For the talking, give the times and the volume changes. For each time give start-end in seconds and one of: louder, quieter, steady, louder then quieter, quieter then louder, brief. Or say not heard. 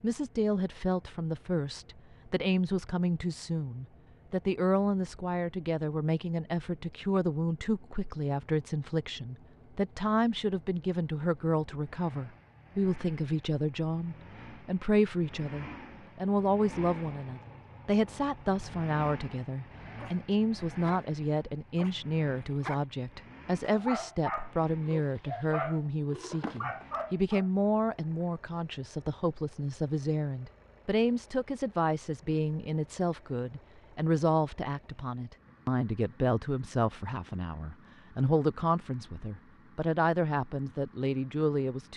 0.0-41.9 steady.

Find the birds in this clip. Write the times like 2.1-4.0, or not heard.
not heard.